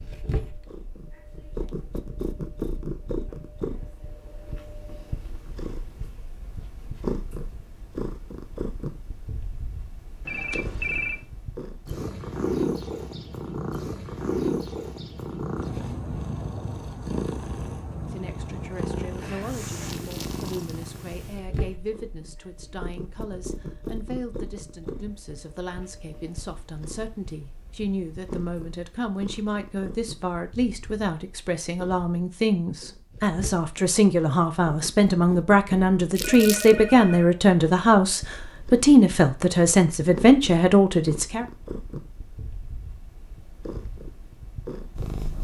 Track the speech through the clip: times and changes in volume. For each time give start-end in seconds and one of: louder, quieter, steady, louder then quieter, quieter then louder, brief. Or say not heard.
17.9-41.5 louder.